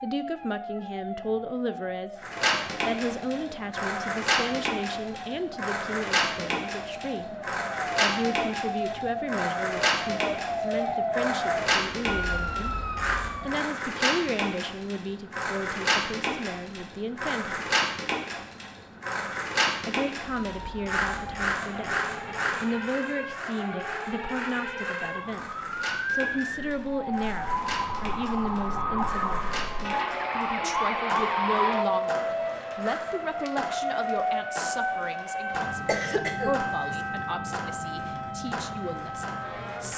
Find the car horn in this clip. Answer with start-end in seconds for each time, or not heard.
not heard.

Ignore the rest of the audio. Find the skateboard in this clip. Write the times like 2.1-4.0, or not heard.
2.2-39.9.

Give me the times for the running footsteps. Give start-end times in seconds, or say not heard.
not heard.